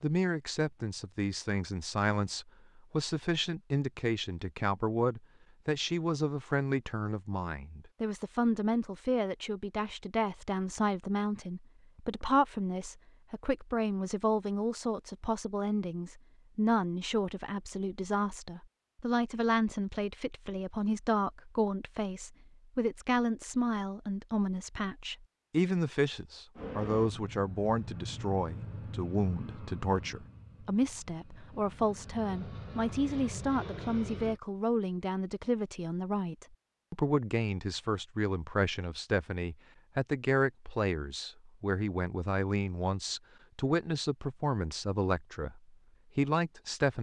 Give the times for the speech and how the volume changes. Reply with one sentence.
The speech can be heard from 0.0 to 46.9 s, at a steady volume.